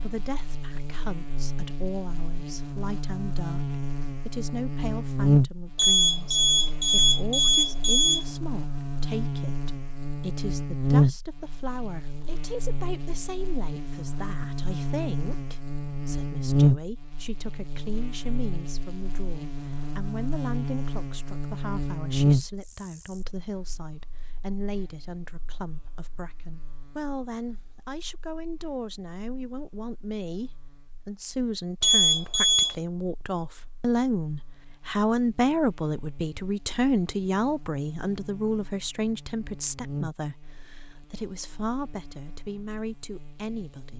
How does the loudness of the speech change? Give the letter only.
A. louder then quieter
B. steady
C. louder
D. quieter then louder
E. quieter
C.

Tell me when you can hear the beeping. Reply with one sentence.
You can hear the beeping from 5.8 to 8.2 s and from 31.8 to 32.8 s.